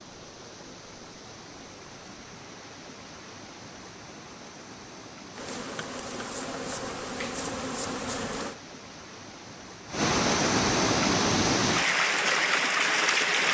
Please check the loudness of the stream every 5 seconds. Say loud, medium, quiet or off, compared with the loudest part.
quiet, quiet, loud.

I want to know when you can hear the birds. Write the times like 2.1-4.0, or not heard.
not heard.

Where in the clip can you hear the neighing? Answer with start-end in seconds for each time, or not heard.
not heard.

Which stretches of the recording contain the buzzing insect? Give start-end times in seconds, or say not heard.
5.3-8.6.